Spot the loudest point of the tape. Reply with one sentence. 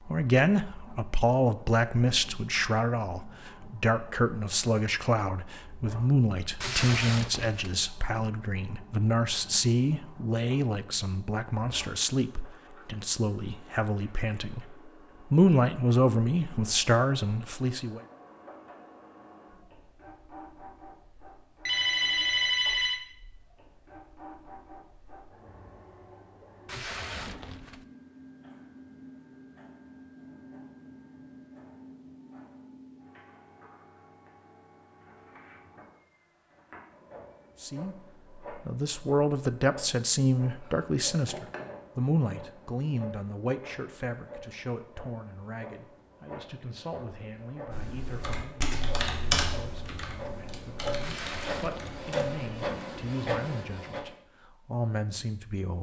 The loudest moment of the tape is at 7 seconds.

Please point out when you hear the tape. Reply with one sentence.
The tape can be heard from 6.6 to 7.8 s, from 26.6 to 27.9 s and from 51.0 to 52.2 s.